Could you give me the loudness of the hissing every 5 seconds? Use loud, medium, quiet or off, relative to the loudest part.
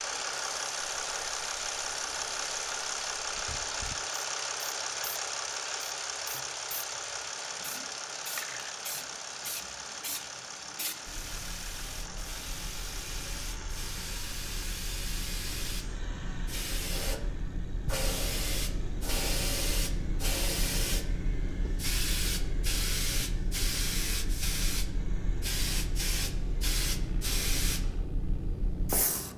quiet, medium, medium, loud, loud, loud.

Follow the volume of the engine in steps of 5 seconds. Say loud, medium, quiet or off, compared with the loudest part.
loud, loud, medium, quiet, quiet, quiet.